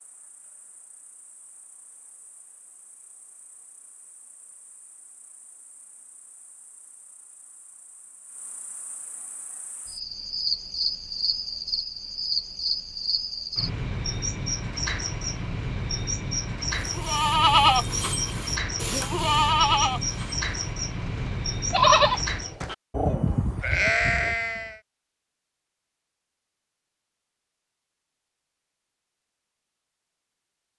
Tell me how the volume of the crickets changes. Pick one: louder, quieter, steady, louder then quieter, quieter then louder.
louder.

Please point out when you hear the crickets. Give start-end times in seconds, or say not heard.
0.0-22.6.